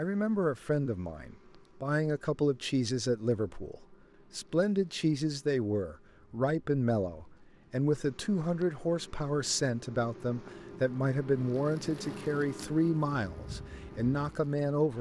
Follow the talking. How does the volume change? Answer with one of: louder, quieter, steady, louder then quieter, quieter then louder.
steady.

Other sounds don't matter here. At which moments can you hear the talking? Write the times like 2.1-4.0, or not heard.
0.0-14.9.